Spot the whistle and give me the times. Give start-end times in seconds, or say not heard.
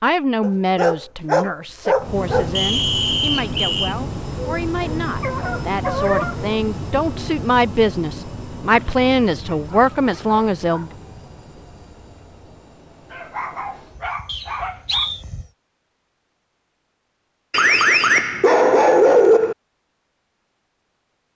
2.5-4.0, 14.2-15.2.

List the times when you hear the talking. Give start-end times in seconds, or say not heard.
0.0-10.9.